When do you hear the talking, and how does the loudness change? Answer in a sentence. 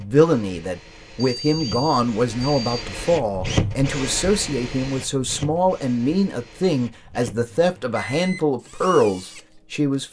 The talking can be heard from 0.0 to 10.0 s, at a steady volume.